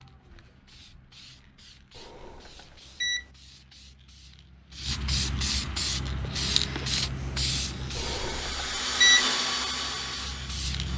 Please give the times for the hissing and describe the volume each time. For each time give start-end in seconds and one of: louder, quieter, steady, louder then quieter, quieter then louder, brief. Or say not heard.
0.0-10.9 louder then quieter.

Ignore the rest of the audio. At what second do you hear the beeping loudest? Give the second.
9 s.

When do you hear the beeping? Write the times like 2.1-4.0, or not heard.
1.9-3.2, 8.0-9.2.